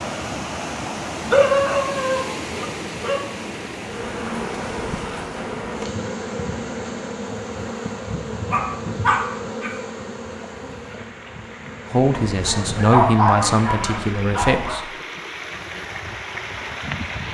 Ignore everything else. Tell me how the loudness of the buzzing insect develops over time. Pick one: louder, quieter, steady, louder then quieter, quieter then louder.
quieter.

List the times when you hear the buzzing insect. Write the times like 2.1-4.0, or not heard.
3.8-12.9.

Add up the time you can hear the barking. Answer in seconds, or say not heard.
6 s.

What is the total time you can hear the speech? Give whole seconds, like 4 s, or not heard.
3 s.